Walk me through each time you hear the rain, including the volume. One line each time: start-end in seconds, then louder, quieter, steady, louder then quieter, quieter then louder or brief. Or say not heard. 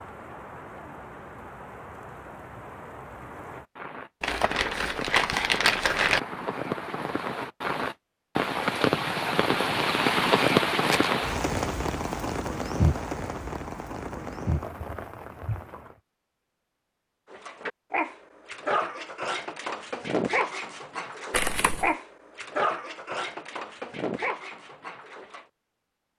0.0-16.0 louder then quieter.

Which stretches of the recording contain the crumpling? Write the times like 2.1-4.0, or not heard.
4.2-6.2, 10.7-11.2, 21.3-21.9.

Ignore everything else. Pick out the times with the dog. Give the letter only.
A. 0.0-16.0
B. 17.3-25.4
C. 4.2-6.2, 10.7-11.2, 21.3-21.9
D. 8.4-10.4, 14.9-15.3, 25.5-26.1
B.